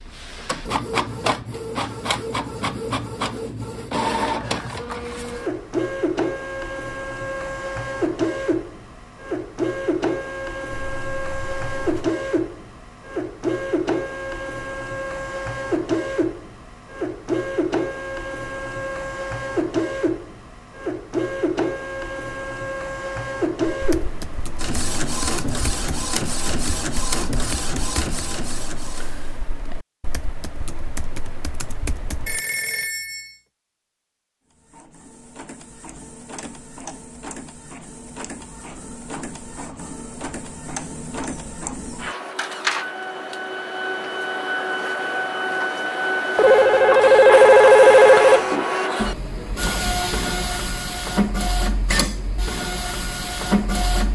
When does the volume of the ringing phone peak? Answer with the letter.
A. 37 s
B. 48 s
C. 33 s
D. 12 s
B.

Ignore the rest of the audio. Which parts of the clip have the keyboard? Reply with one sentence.
You can hear the keyboard from 23.6 to 32.4 s.